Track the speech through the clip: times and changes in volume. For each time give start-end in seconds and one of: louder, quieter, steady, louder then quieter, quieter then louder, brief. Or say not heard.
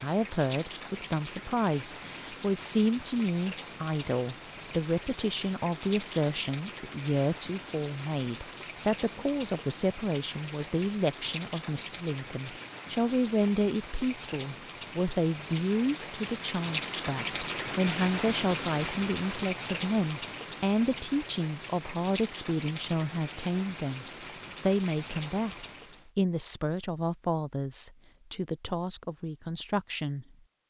0.0-30.2 steady.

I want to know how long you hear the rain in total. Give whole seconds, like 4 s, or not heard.
26 s.